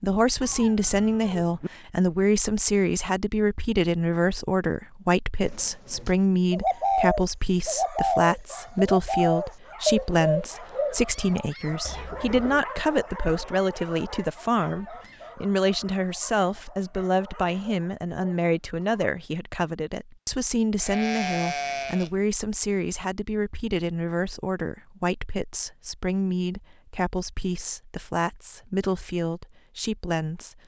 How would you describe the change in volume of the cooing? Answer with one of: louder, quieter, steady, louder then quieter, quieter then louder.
quieter.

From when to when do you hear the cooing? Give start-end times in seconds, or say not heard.
5.4-12.7.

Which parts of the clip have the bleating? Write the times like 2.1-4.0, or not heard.
20.8-22.1.